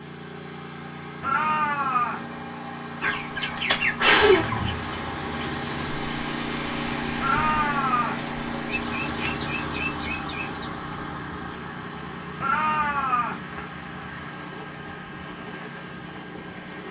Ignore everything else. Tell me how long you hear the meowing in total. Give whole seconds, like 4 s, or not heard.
3 s.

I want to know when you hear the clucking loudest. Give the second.
4 s.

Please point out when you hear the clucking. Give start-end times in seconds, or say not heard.
3.0-4.7, 8.7-10.6.